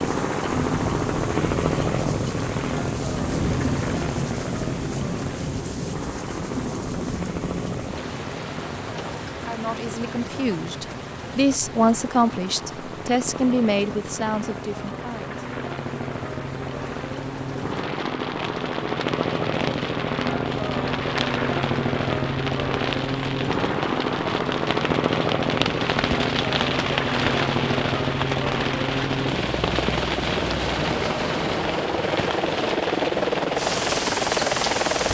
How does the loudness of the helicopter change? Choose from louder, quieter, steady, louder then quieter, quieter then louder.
quieter then louder.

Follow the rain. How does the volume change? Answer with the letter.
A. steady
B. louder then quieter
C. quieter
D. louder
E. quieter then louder
E.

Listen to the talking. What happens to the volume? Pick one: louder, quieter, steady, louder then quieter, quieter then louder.
louder then quieter.